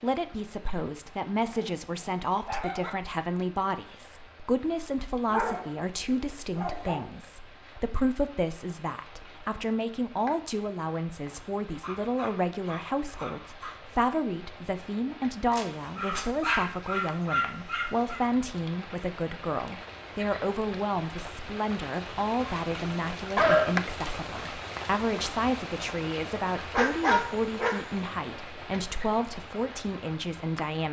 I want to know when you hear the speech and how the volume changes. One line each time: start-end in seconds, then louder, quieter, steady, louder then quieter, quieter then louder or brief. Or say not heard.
0.0-30.8 steady.